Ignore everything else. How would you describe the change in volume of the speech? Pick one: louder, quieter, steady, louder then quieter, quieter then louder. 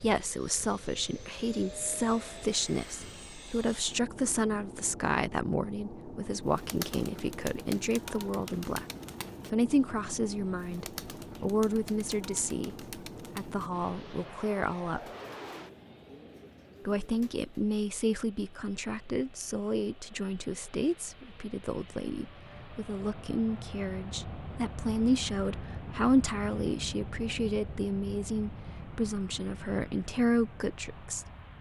steady.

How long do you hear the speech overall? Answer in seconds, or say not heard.
29 s.